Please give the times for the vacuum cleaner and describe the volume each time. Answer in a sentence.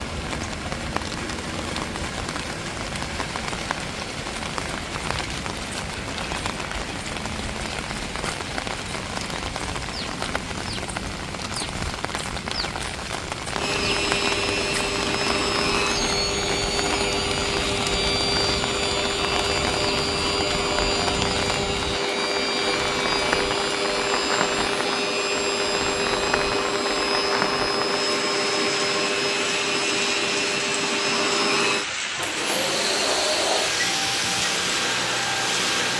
You can hear the vacuum cleaner from 13.6 to 35.9 s, at a steady volume.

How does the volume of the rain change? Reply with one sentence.
The loudness of the rain stays about the same.